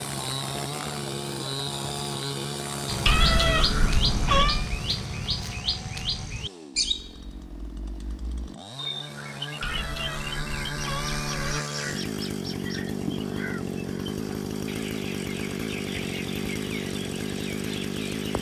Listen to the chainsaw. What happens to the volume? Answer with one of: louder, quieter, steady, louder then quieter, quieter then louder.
quieter then louder.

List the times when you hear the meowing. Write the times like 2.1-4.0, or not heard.
3.0-4.7, 9.6-11.7.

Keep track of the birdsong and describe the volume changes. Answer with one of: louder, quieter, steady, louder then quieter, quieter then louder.
quieter.